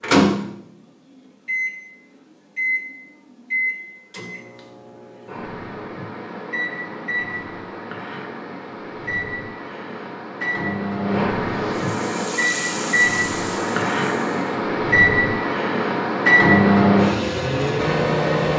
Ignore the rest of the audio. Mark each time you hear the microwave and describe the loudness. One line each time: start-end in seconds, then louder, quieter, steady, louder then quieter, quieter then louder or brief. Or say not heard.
0.0-18.5 quieter then louder.